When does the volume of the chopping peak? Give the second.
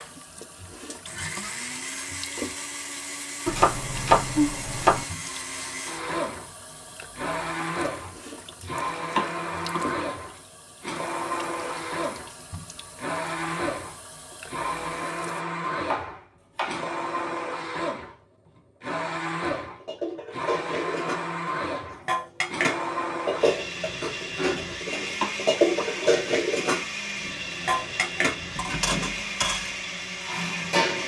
4 s.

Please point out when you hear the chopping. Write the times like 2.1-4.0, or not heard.
3.5-5.0, 9.2-10.0, 15.9-16.9, 25.2-26.1.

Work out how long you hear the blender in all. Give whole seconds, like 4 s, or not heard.
31 s.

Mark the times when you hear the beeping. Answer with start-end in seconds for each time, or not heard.
not heard.